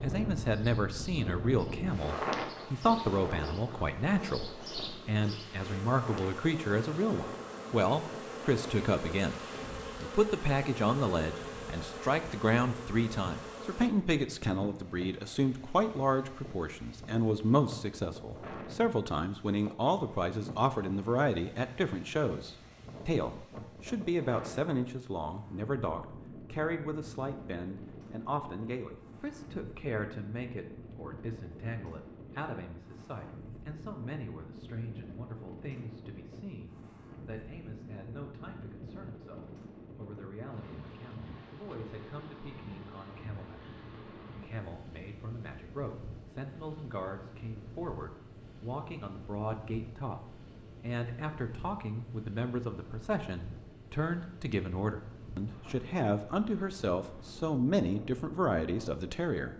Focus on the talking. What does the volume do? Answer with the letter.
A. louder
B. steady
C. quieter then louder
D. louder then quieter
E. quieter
C.